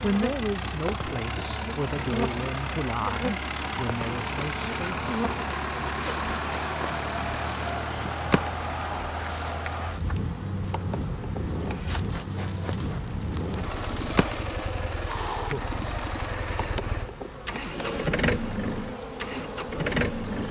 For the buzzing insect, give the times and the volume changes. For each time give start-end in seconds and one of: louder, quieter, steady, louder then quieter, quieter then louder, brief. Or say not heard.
0.0-20.4 steady.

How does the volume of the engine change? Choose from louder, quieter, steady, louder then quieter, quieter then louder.
steady.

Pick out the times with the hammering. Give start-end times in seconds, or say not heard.
not heard.